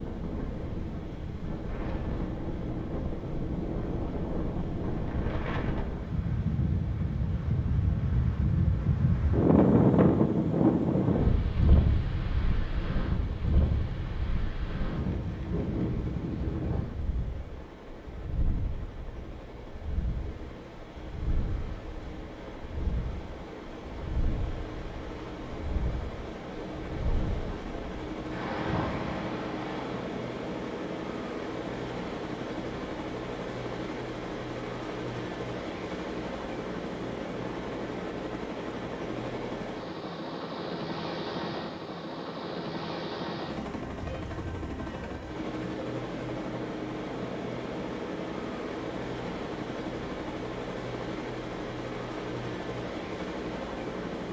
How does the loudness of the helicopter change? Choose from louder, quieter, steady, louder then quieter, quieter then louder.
louder.